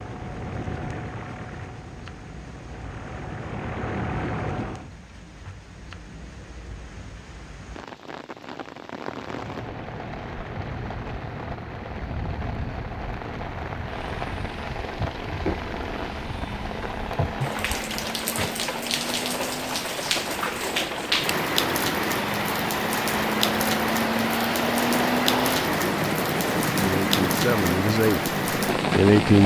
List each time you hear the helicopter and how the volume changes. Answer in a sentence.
You can hear the helicopter from 0.0 to 4.9 s, getting quieter then louder; and from 9.2 to 29.4 s, getting louder.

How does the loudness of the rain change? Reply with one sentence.
The volume of the rain goes up.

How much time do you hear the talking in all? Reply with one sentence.
The talking can be heard for 2 seconds in total.